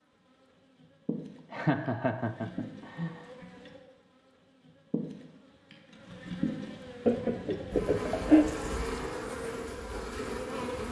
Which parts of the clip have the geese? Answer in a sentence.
You can't hear the geese here.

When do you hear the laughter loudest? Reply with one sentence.
The loudest moment of the laughter is at 8 seconds.